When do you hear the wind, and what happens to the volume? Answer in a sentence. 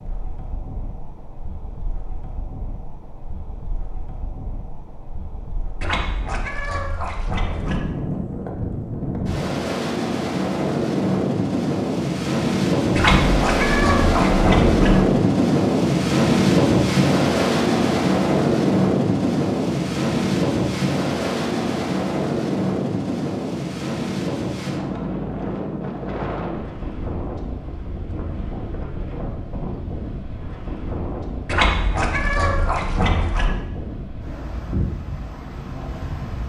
The wind can be heard from 0.0 to 36.4 s, getting louder then quieter.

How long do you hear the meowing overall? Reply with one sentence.
The meowing can be heard for 6 seconds in total.